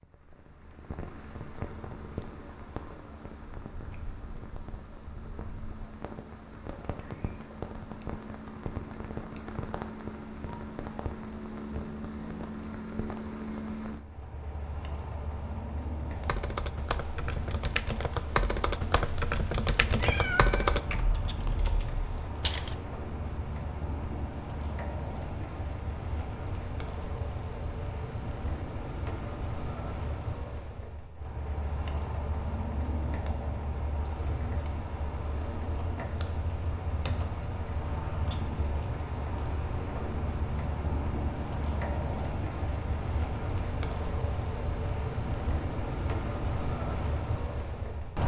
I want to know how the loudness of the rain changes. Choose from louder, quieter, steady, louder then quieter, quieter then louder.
louder.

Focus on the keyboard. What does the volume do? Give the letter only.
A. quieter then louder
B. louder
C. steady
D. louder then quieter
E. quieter
D.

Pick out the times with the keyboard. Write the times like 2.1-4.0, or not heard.
16.1-22.8.